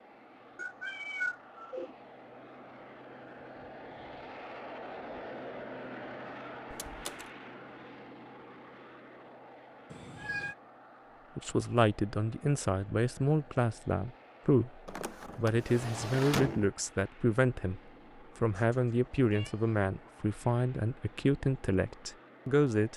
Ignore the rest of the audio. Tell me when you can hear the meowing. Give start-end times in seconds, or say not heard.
0.6-1.9, 9.9-10.6, 18.5-19.9.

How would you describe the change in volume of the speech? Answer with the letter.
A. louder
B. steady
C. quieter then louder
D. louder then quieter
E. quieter
B.